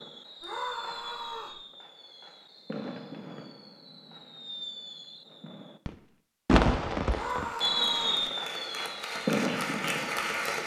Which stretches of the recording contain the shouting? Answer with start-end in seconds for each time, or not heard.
0.4-1.6, 7.1-8.2.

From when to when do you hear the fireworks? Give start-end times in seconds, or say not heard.
0.0-10.6.